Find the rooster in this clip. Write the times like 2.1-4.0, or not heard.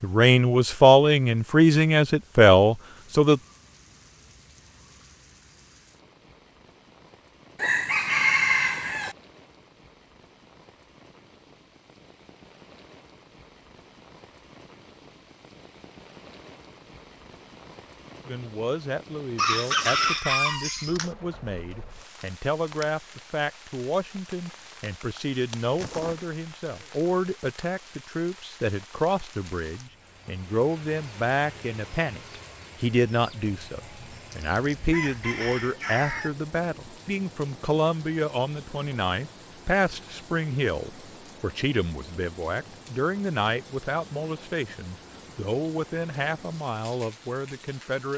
7.5-9.2, 19.4-21.1, 34.3-36.3.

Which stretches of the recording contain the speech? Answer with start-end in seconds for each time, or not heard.
0.0-3.4, 18.2-48.1.